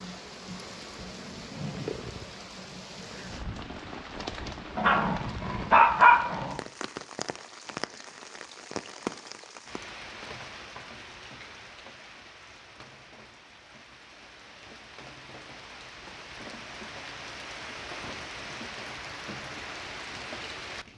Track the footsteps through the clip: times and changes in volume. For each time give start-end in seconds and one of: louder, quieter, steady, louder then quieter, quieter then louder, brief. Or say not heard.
not heard.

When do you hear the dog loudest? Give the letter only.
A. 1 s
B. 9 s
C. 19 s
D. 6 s
D.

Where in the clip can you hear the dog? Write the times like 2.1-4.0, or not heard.
4.8-6.5.